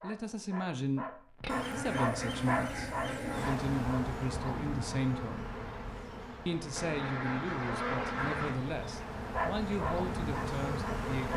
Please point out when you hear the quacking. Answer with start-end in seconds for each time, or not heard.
1.4-3.5, 6.8-8.6.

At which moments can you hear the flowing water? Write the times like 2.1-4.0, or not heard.
not heard.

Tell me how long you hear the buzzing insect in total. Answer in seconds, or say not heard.
8 s.